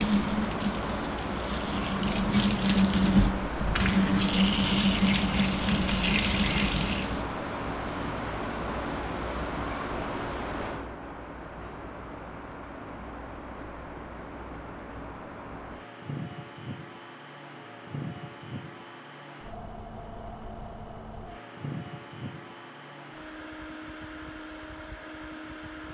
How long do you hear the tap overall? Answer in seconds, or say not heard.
7 s.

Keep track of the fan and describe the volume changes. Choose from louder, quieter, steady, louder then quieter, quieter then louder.
quieter.